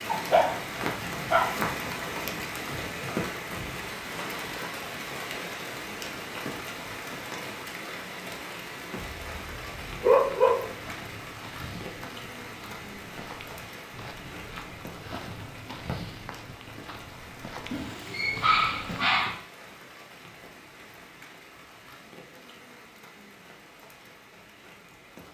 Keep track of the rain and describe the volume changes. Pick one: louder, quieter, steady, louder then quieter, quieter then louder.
quieter.